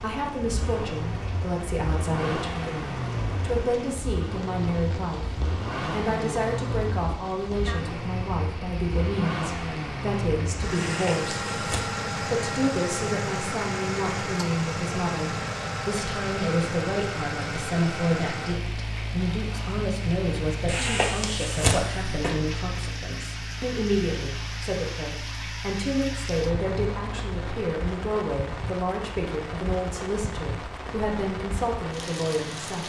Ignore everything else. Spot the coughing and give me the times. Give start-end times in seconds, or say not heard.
10.8-11.8, 20.6-22.3.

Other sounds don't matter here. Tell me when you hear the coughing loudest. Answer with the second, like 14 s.
22 s.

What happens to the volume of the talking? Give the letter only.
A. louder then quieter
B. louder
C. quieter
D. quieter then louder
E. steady
E.